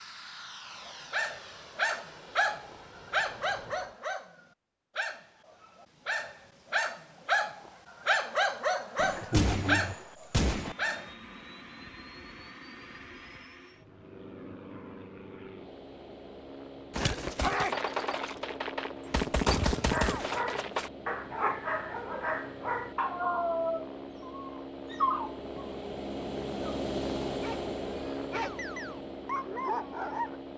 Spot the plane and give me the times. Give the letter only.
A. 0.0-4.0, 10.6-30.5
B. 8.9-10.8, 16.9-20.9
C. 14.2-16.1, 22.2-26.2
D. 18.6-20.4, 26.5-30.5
A.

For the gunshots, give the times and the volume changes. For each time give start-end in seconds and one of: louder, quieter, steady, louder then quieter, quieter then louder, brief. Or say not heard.
8.9-10.8 brief
16.9-20.9 quieter then louder.